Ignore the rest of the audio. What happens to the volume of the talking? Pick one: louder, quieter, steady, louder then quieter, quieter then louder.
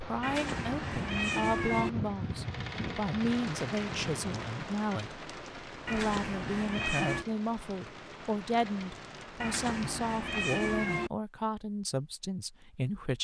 steady.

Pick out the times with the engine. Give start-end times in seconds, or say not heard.
2.2-4.5.